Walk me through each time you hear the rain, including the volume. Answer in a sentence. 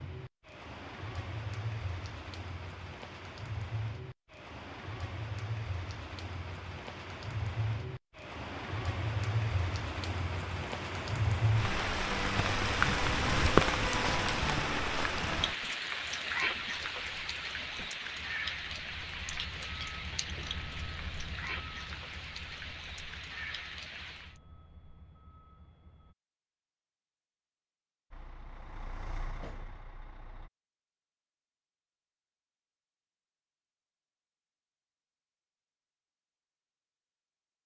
The rain can be heard from 0.0 to 24.4 s, getting louder then quieter.